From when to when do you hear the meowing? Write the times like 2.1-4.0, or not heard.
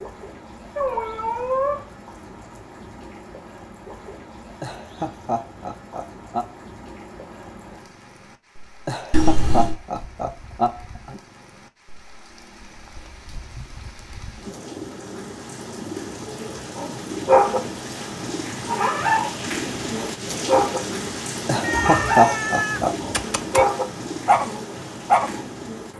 0.8-1.9, 9.1-9.8, 21.6-23.6.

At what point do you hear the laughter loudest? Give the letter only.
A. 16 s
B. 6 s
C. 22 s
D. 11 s
C.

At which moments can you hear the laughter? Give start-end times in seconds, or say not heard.
4.6-6.5, 8.8-11.2, 21.4-22.9.